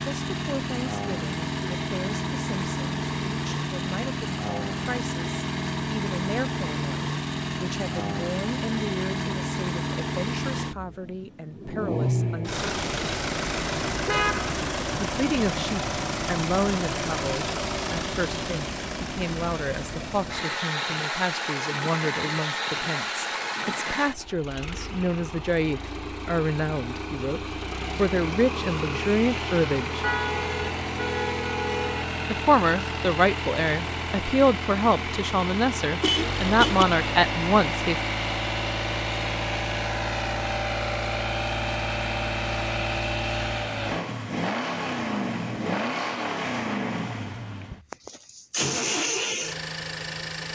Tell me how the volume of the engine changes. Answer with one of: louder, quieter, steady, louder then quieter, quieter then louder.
steady.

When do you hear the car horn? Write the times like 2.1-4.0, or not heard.
13.9-14.6, 30.0-32.0, 36.0-36.9.